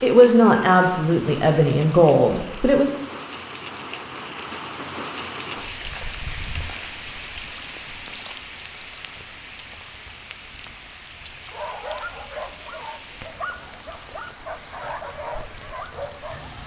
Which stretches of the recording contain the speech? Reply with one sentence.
The speech can be heard from 0.0 to 2.9 s.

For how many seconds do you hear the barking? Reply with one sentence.
The barking can be heard for 5 seconds in total.